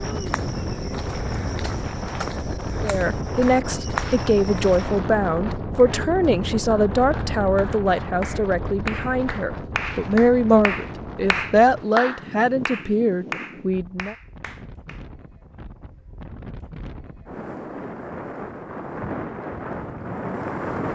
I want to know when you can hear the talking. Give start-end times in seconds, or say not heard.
2.8-14.2.